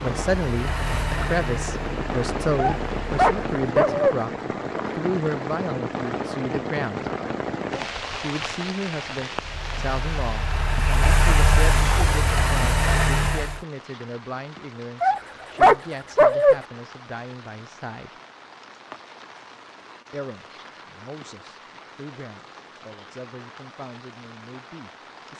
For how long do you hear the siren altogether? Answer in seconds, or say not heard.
not heard.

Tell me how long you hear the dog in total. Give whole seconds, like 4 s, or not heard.
3 s.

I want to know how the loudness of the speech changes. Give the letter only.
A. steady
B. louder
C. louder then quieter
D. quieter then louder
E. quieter
E.